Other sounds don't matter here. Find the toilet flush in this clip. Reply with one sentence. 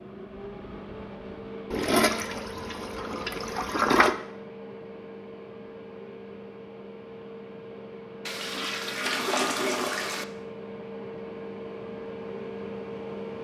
You can hear the toilet flush from 1.7 to 4.2 s and from 8.2 to 10.2 s.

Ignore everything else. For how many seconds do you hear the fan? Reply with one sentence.
You can hear the fan for 13 seconds altogether.